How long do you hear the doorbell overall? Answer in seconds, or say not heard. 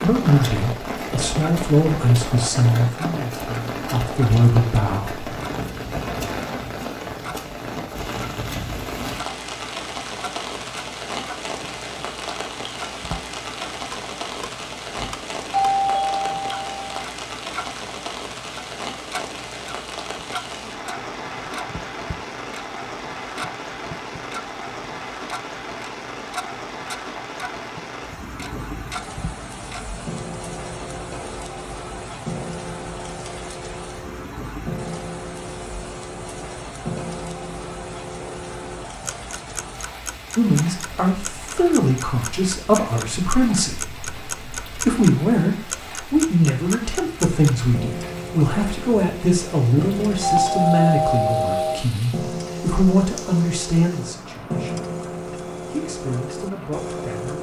4 s.